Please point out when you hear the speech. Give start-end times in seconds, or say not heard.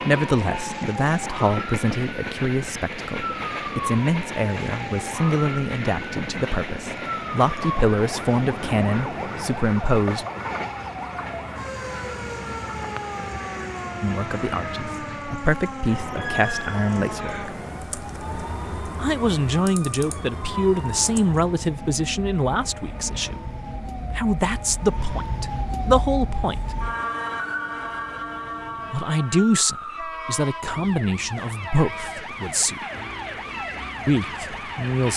0.1-10.2, 14.0-17.6, 18.9-23.6, 24.1-26.7, 28.9-32.8, 34.0-35.1.